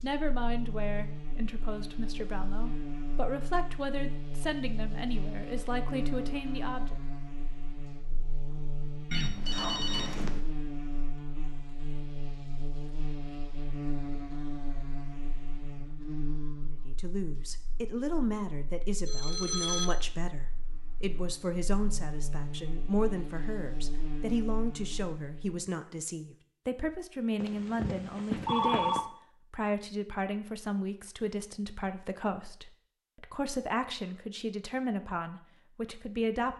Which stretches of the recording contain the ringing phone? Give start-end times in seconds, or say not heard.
9.1-10.4, 19.1-19.9, 27.4-29.0.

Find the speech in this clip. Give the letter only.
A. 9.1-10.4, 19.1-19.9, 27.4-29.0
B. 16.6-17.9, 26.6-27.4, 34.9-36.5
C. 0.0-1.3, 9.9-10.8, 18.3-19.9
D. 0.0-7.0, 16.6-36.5
D.